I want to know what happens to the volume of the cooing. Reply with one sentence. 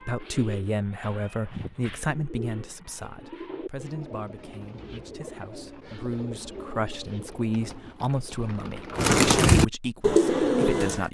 The volume of the cooing goes up.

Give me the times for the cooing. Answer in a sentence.
You can hear the cooing from 0.0 to 11.1 s.